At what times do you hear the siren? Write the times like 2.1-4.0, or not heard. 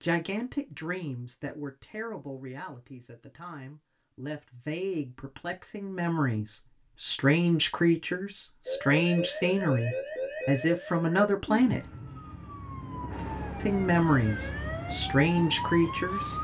8.7-16.3.